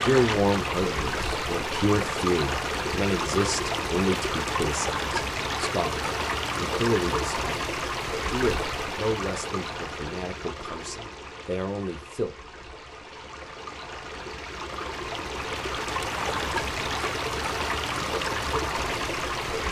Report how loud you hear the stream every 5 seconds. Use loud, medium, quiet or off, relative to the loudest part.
loud, loud, medium, loud.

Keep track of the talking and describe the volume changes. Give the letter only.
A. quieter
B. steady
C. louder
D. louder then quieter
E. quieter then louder
A.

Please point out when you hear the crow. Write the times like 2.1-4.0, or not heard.
not heard.